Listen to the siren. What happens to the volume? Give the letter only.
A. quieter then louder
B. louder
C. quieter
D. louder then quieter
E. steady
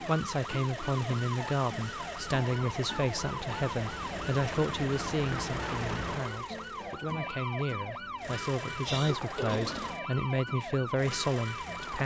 E.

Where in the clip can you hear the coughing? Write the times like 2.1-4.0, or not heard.
8.7-10.0.